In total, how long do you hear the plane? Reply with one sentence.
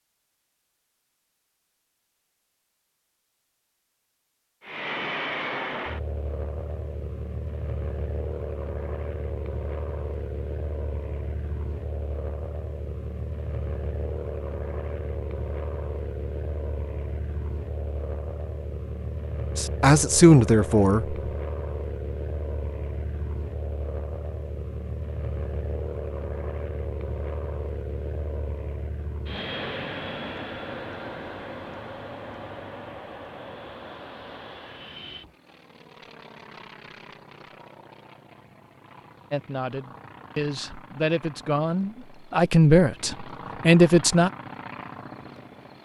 You can hear the plane for 41 seconds altogether.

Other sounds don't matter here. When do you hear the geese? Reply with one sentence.
The geese can't be heard in this clip.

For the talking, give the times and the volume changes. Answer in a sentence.
You can hear the talking briefly from 19.6 to 21.1 s; and from 39.3 to 44.3 s, getting louder.